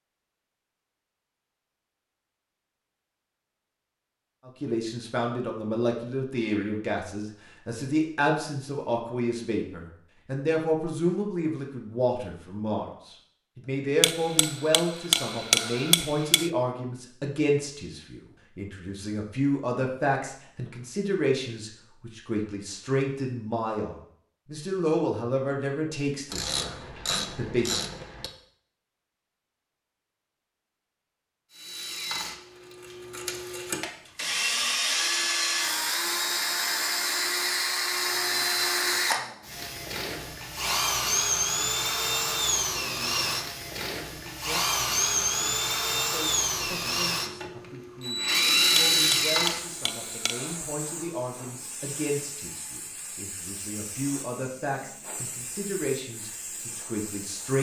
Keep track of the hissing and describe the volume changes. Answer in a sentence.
The loudness of the hissing stays about the same.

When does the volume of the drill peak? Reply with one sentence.
The volume of the drill peaks at 49 seconds.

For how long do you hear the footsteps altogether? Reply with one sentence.
You can't hear the footsteps here.